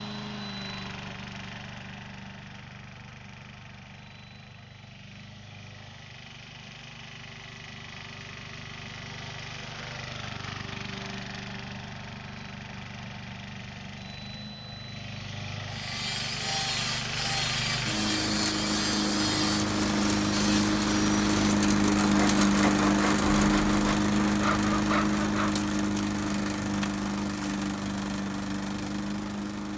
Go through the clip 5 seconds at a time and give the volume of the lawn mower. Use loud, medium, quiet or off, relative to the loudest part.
quiet, quiet, quiet, medium, loud, medium.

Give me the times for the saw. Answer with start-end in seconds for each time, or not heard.
15.7-25.6.